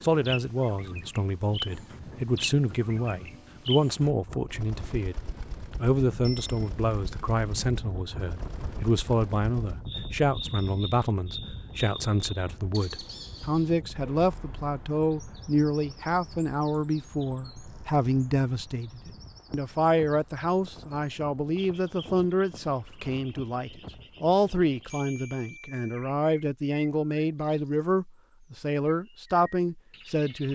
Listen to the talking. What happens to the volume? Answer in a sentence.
The volume of the talking stays about the same.